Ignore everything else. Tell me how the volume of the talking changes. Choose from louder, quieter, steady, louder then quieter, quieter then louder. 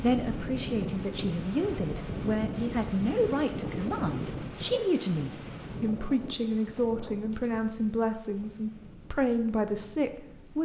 steady.